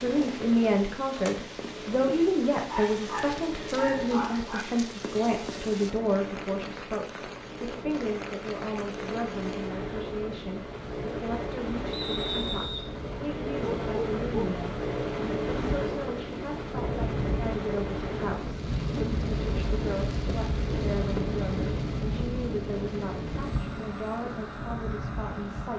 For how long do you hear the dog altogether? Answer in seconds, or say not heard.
3 s.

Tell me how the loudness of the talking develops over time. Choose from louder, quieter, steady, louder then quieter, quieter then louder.
quieter.